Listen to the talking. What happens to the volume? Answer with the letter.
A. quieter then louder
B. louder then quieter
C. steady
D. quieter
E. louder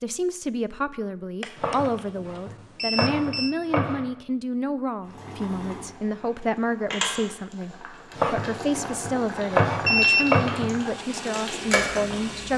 C.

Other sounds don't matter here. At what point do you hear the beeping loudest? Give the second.
10 s.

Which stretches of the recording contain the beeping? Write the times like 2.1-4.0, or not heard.
1.4-2.0, 2.8-3.5, 9.8-10.2.